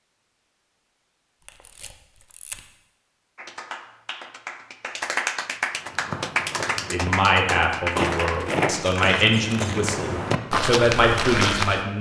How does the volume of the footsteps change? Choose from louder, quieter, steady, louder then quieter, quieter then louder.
louder.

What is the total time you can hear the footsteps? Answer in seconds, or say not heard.
6 s.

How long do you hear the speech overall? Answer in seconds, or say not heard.
5 s.